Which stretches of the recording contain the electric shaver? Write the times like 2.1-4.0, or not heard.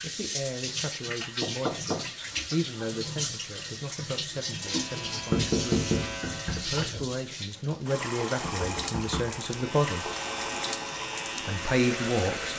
4.5-6.8, 9.4-12.5.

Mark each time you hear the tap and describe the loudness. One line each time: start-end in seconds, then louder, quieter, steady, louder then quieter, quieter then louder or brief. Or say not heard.
0.0-12.5 steady.